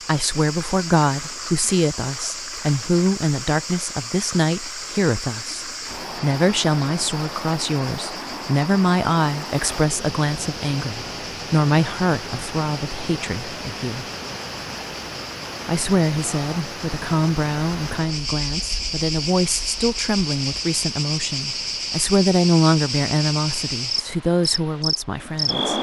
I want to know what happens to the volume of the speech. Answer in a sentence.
The volume of the speech stays about the same.